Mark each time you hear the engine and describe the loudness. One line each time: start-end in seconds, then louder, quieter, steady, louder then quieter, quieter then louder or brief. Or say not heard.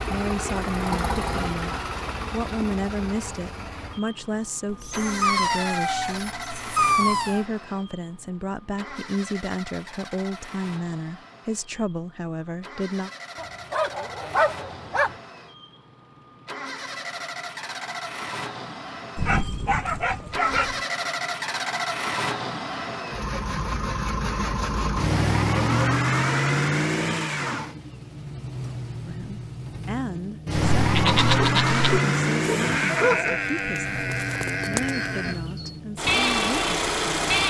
0.0-37.4 quieter then louder.